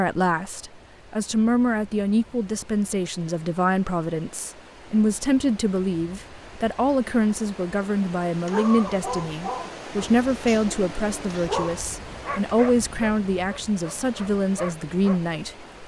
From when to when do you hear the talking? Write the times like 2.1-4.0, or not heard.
0.0-15.7.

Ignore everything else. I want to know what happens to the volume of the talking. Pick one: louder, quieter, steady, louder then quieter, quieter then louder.
steady.